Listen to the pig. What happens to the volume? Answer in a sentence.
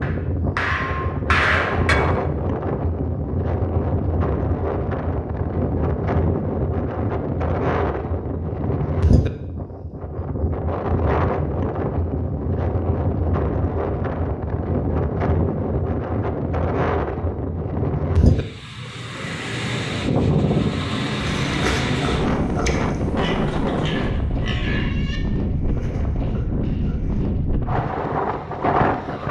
The loudness of the pig goes down.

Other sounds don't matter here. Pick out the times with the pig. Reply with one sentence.
The pig can be heard from 21.1 to 27.2 s.